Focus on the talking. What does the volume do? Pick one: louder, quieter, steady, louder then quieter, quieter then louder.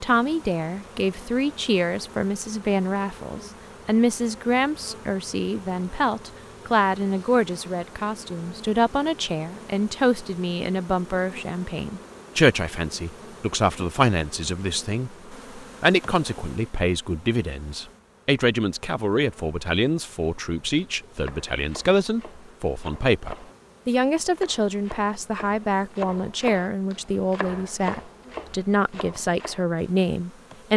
steady.